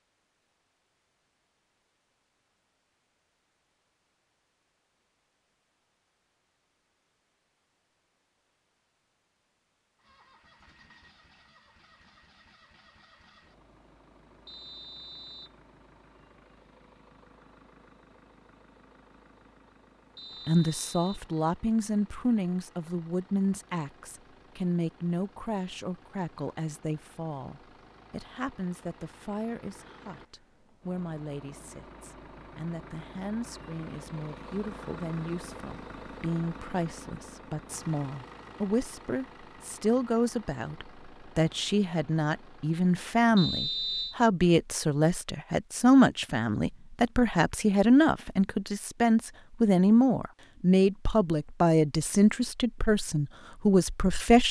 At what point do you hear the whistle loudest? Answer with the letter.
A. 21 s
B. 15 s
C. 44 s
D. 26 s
C.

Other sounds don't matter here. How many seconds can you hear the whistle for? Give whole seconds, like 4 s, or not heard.
3 s.